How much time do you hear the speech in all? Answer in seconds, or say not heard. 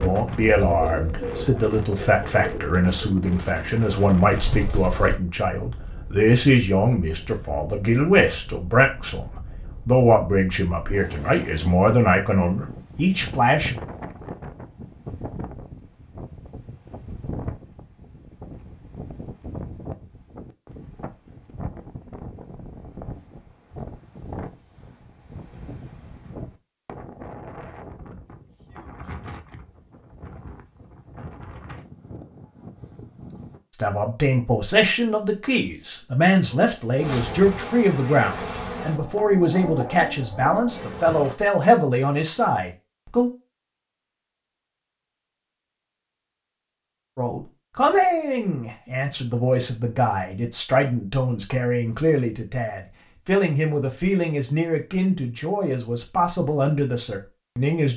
34 s.